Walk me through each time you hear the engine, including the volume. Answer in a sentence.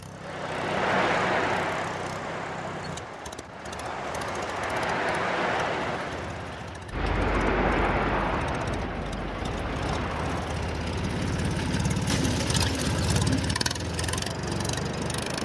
The engine can be heard from 0.0 to 15.3 s, getting louder.